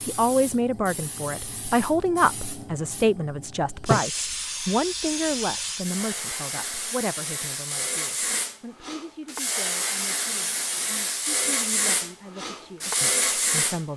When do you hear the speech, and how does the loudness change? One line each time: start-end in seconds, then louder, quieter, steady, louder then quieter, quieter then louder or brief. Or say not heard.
0.0-13.9 quieter.